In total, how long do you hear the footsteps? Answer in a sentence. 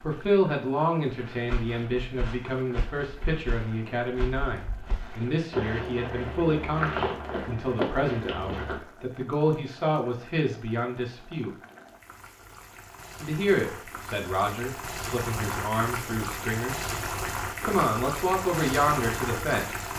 You can hear the footsteps for 8 seconds altogether.